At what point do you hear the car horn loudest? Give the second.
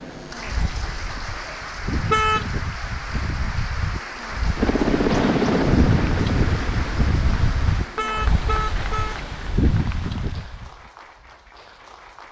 2 s.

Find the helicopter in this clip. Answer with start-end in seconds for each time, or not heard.
4.5-7.8.